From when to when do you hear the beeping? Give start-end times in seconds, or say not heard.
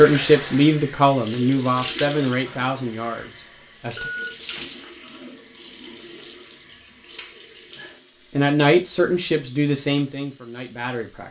4.0-4.9.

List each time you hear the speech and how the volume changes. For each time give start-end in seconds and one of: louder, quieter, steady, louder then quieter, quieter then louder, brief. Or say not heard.
0.0-4.1 quieter
8.3-11.2 brief.